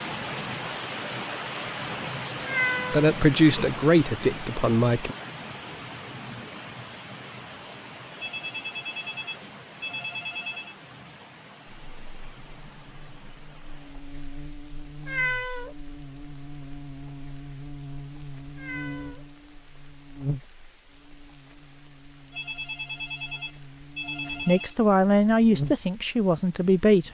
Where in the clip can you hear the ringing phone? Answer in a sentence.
The ringing phone can be heard from 8.2 to 10.8 s and from 22.3 to 24.8 s.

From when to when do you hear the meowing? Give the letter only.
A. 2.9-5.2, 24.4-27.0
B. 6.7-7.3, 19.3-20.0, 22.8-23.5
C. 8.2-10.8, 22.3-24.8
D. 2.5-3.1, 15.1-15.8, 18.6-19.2
D.